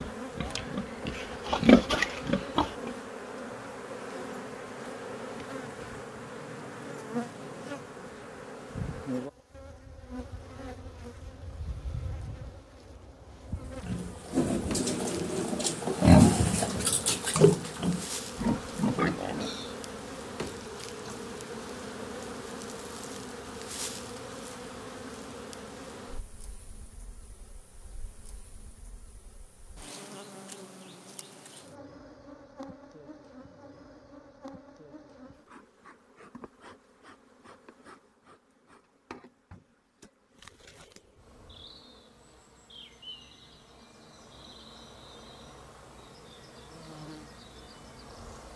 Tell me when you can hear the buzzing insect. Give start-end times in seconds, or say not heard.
0.0-48.5.